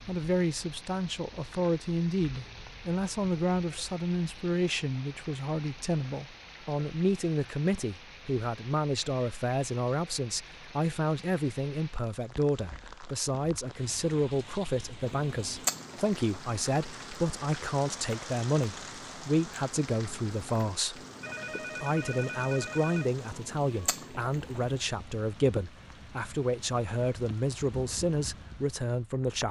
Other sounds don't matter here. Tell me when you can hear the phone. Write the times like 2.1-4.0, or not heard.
21.2-23.1.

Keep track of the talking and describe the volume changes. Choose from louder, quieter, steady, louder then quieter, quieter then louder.
steady.